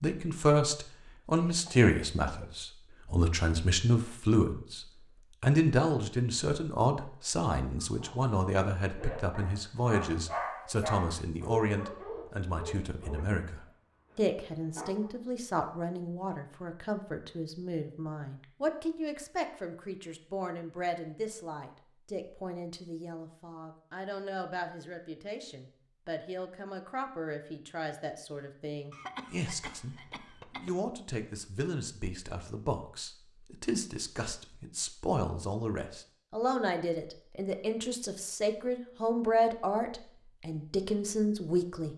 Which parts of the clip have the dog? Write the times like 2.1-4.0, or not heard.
7.8-15.2.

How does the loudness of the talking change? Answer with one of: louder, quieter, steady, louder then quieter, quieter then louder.
quieter then louder.